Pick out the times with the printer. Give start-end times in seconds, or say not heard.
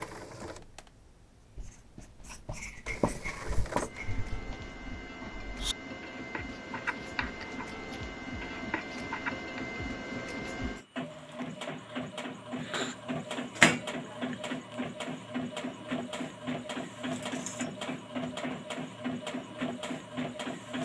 0.0-20.7.